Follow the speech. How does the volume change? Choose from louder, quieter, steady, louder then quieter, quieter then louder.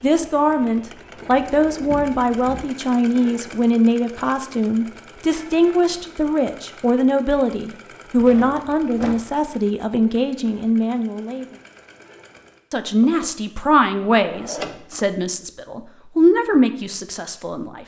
steady.